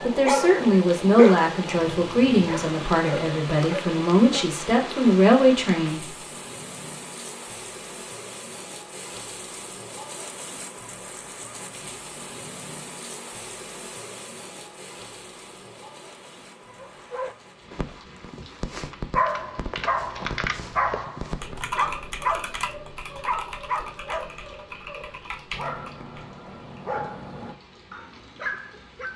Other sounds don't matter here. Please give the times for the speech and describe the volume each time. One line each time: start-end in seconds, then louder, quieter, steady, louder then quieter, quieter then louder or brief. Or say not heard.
0.0-6.0 quieter then louder.